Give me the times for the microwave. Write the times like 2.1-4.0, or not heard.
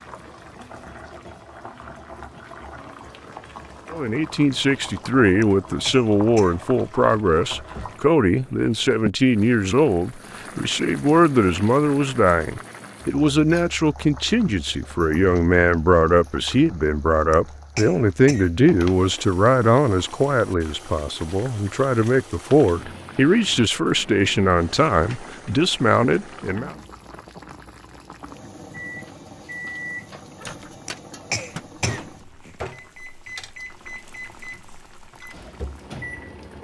28.9-36.5.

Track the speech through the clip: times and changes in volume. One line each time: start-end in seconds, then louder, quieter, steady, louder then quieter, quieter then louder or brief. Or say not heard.
3.9-26.8 steady.